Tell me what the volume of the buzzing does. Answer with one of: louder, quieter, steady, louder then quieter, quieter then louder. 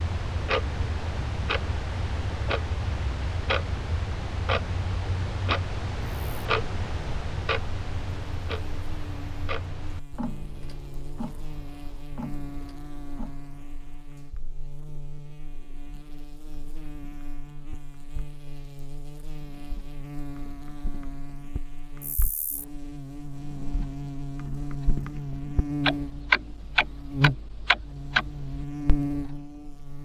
louder.